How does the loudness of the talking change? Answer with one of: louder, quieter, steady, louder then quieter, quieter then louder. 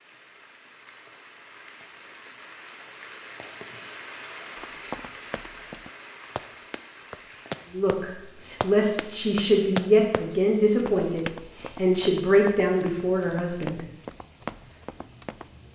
steady.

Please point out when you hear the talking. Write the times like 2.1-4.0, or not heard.
7.7-13.8.